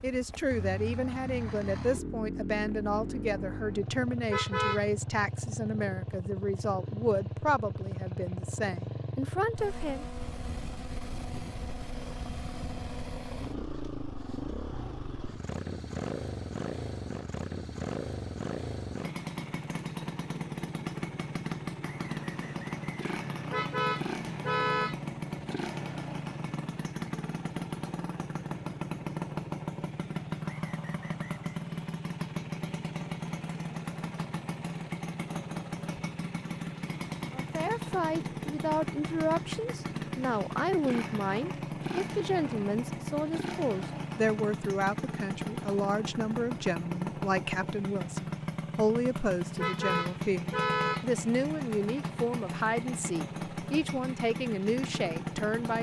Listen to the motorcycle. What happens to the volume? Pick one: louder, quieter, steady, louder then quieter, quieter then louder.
steady.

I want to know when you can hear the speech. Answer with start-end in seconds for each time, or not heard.
0.0-10.1, 37.4-55.7.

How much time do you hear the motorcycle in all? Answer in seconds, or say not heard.
56 s.